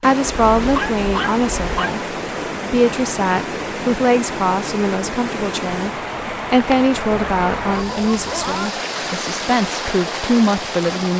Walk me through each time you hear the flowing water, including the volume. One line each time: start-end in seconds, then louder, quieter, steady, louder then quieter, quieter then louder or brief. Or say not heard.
0.0-11.1 steady.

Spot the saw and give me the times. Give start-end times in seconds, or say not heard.
not heard.